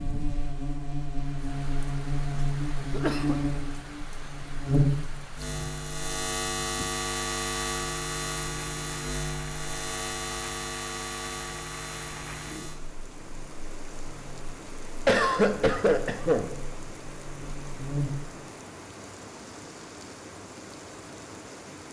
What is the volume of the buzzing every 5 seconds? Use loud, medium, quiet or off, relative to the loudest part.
loud, loud, medium, medium, off.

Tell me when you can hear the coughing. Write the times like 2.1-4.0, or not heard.
2.4-3.4, 15.1-16.5.